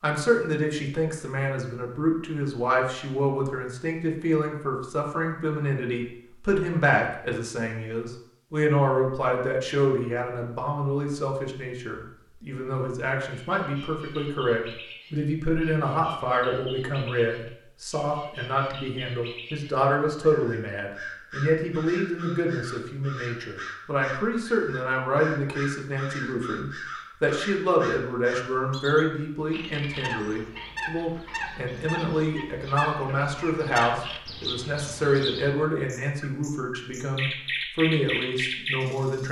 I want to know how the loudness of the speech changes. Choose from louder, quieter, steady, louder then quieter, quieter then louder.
steady.